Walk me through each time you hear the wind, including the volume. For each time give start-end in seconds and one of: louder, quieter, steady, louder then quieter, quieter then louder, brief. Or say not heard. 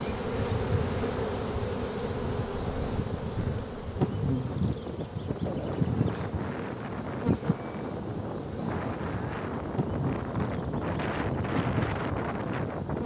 0.0-13.0 louder.